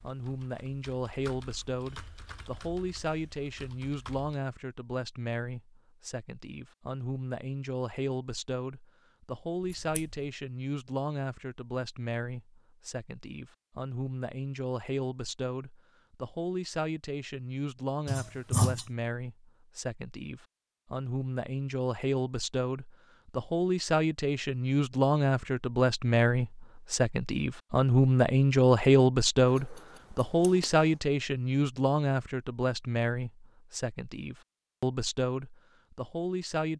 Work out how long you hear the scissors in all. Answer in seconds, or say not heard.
3 s.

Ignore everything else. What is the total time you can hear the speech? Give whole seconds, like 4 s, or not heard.
37 s.